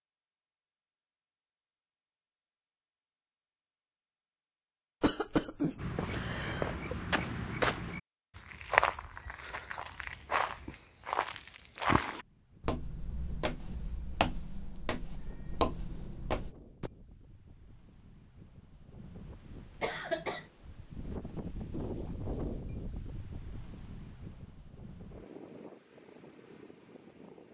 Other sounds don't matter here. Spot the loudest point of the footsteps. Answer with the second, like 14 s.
9 s.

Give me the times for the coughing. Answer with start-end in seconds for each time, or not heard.
5.0-6.8, 19.8-20.4.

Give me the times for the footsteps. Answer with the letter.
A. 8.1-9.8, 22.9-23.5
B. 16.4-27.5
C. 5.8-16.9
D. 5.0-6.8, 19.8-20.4
C.